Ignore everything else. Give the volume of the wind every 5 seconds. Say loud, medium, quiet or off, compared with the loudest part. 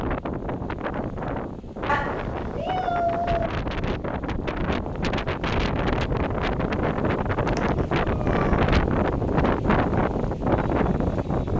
medium, loud, loud.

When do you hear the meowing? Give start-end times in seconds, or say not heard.
1.9-3.5, 7.5-8.7.